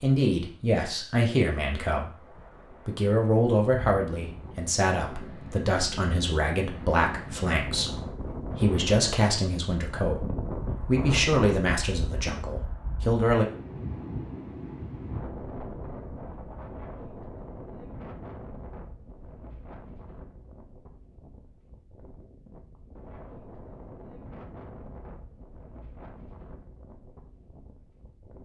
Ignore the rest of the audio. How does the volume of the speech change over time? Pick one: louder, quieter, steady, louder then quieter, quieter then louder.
steady.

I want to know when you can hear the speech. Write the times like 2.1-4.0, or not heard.
0.0-13.4.